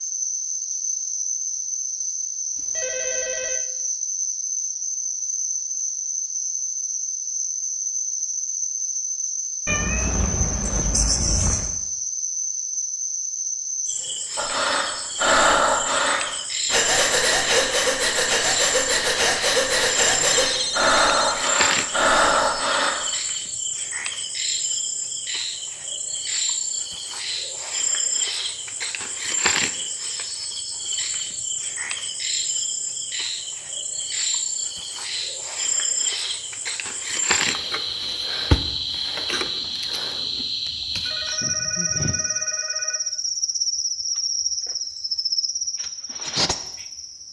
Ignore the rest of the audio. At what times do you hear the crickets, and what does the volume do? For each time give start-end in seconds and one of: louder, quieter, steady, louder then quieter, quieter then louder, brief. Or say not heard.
0.0-47.2 steady.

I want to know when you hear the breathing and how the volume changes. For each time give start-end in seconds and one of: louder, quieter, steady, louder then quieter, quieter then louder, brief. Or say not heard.
14.3-23.1 steady.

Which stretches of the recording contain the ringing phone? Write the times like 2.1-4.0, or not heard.
2.5-3.6, 20.1-21.4, 41.0-43.0.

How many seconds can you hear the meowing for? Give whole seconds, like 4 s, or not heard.
2 s.